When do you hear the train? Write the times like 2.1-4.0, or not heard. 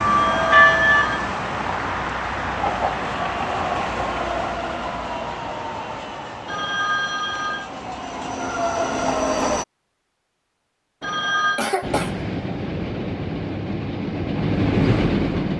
0.0-9.7, 11.8-15.5.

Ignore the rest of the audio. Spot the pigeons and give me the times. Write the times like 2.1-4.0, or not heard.
not heard.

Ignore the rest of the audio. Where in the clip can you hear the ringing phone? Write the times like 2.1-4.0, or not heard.
0.1-1.2, 6.5-7.7, 11.0-11.6.